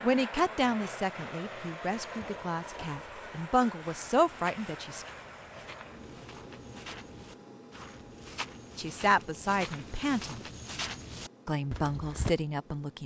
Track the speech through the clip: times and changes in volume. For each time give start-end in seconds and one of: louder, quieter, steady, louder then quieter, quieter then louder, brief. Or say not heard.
0.0-5.0 quieter then louder
8.8-10.4 brief
11.4-13.0 brief.